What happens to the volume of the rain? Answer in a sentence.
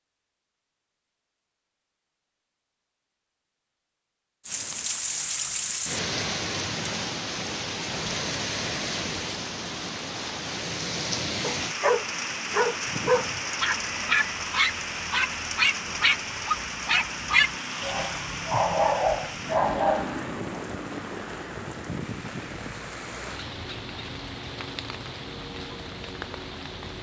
The loudness of the rain goes down.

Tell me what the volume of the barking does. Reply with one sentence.
The volume of the barking stays about the same.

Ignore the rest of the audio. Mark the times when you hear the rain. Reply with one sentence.
The rain can be heard from 4.5 to 26.9 s.